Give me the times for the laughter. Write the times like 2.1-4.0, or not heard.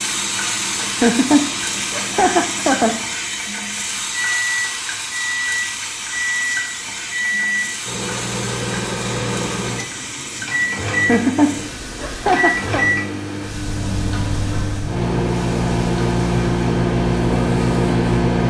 0.8-3.0, 10.9-12.8.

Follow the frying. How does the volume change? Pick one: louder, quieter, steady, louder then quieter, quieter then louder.
quieter.